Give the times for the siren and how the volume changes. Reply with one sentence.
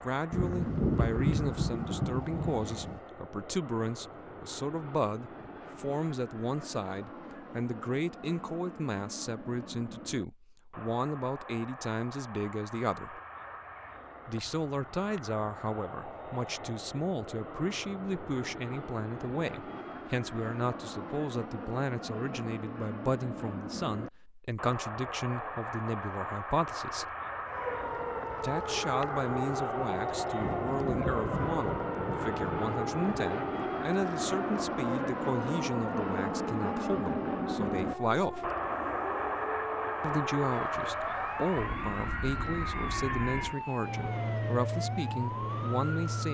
The siren can be heard from 27.4 to 46.2 s, at a steady volume.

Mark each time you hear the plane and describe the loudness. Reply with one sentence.
You can hear the plane from 0.0 to 46.2 s, getting louder.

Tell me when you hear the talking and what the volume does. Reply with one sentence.
You can hear the talking from 0.0 to 13.2 s, at a steady volume; from 14.2 to 27.1 s, at a steady volume; from 28.4 to 38.5 s, at a steady volume; and from 40.0 to 46.2 s, at a steady volume.